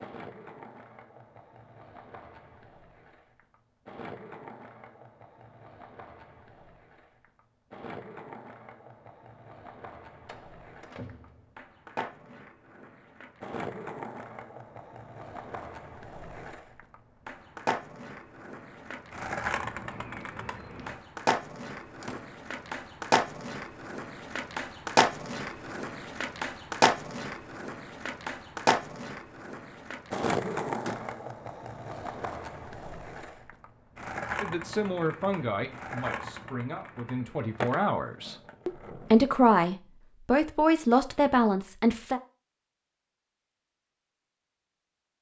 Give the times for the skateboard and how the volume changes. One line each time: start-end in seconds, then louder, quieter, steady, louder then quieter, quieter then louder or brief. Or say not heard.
0.0-39.3 louder then quieter.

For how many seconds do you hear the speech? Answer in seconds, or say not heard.
8 s.